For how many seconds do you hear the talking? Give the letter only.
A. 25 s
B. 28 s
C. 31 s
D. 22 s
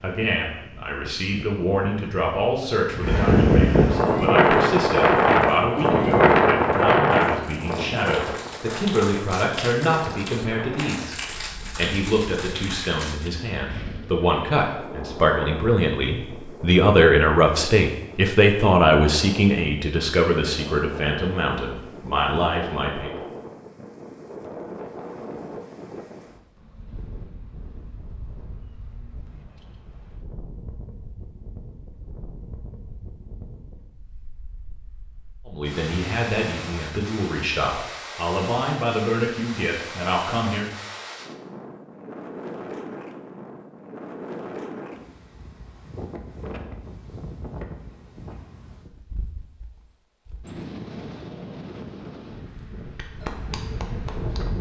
B.